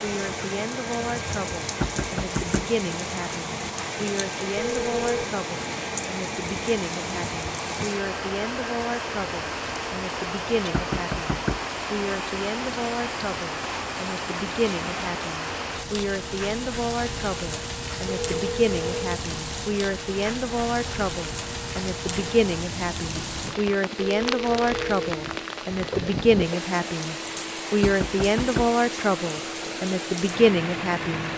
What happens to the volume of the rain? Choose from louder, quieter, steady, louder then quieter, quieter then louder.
steady.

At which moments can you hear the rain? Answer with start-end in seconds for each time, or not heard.
0.0-31.3.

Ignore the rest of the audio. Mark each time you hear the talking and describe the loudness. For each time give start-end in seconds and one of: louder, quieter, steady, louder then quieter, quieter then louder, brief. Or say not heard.
0.0-31.3 louder.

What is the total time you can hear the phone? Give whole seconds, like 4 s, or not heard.
3 s.